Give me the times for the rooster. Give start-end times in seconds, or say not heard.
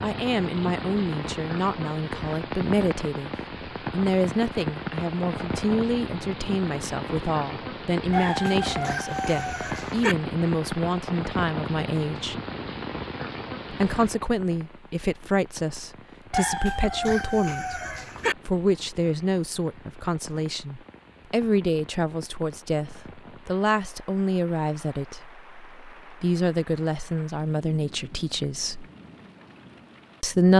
8.1-10.2, 16.3-18.4.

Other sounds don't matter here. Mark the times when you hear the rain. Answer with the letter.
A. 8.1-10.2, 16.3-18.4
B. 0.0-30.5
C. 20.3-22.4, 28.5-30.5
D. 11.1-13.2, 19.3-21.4
B.